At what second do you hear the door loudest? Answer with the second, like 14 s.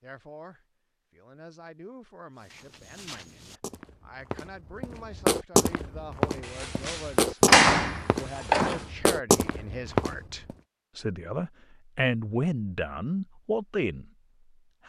8 s.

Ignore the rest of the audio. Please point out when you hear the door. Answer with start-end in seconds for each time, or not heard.
6.5-8.8.